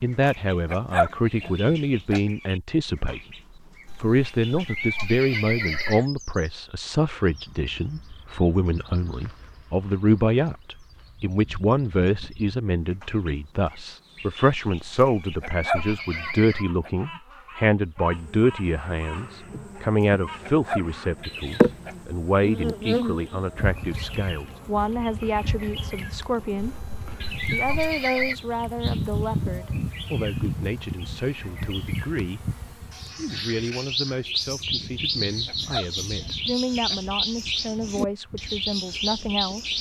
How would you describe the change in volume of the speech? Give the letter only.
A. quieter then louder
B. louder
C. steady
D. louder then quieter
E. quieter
E.